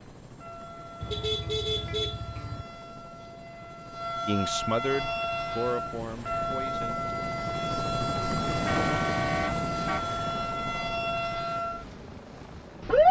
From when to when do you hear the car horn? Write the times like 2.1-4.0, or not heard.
1.0-2.6, 8.4-10.1.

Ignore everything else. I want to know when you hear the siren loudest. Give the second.
13 s.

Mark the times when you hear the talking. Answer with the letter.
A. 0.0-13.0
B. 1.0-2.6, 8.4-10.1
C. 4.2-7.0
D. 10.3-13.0
C.